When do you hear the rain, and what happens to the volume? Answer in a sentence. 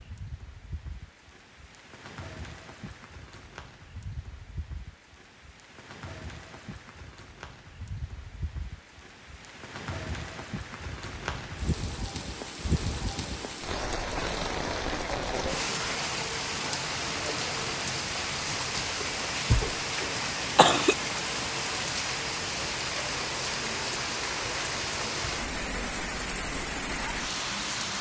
The rain can be heard from 0.0 to 27.9 s, getting louder.